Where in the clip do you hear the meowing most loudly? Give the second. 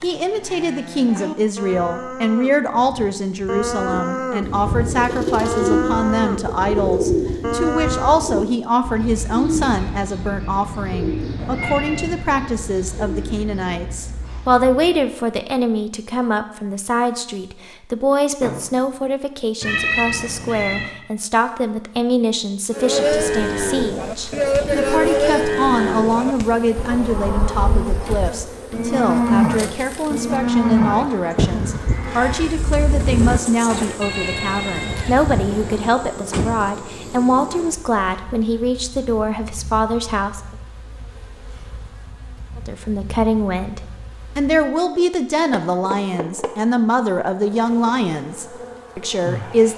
20 s.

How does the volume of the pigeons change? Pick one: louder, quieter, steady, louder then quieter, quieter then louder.
quieter.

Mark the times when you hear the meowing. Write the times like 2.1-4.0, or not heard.
11.3-12.2, 19.6-20.9, 34.0-36.0.